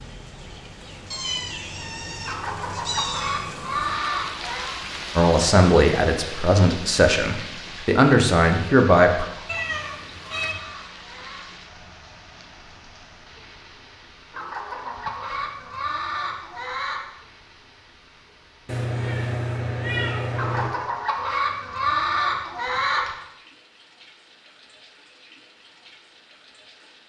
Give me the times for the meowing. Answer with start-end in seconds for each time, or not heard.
1.1-3.5, 9.4-10.6, 18.6-20.7.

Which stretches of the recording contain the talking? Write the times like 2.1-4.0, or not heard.
5.2-9.2.